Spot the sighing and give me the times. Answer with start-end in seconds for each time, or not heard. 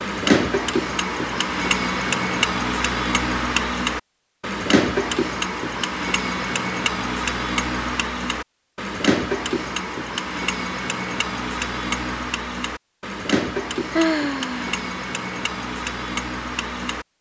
13.9-14.8.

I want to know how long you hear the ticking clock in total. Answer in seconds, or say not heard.
17 s.